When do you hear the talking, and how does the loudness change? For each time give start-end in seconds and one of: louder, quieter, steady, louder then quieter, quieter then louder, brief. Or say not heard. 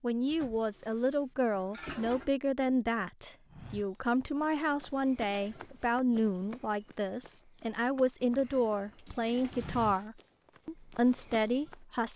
0.0-12.1 steady.